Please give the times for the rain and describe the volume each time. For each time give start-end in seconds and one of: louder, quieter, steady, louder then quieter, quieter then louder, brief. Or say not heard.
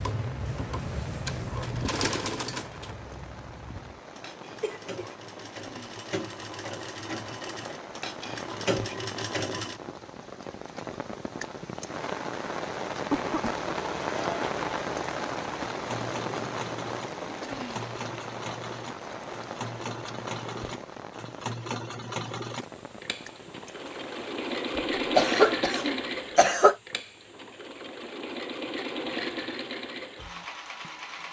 0.0-24.8 louder then quieter.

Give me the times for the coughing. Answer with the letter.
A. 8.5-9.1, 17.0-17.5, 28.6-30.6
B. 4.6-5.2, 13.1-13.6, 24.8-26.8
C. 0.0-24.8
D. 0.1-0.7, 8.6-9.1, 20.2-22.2
B.